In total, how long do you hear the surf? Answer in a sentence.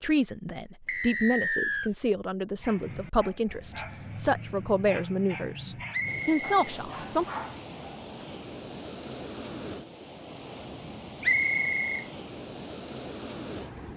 The surf can be heard for 8 seconds in total.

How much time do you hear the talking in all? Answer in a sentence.
The talking can be heard for 7 seconds in total.